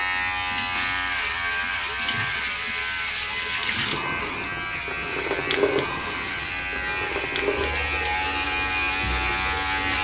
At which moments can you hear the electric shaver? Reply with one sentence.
You can hear the electric shaver from 0.0 to 9.9 s.